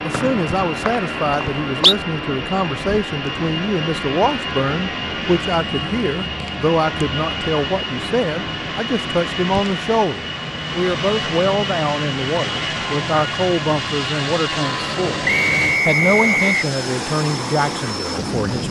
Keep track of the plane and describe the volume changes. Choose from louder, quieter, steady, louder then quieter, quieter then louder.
steady.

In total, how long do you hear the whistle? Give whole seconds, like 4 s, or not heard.
3 s.